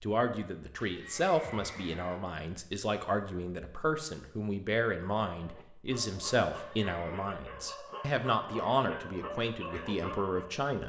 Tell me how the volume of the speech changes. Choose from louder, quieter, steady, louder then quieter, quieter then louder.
steady.